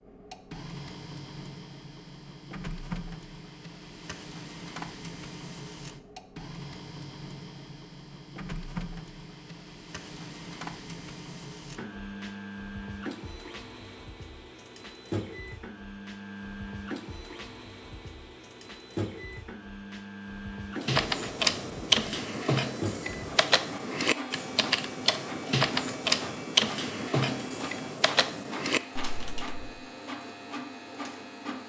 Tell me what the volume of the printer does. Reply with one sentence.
The loudness of the printer stays about the same.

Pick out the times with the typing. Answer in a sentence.
The typing can be heard from 20.8 to 29.9 s.